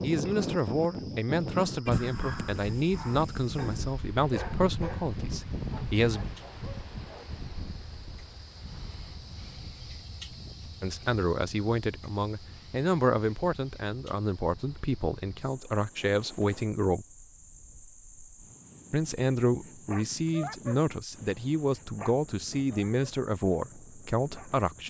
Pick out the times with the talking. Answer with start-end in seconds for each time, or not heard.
0.0-6.2, 10.8-17.1, 18.9-24.8.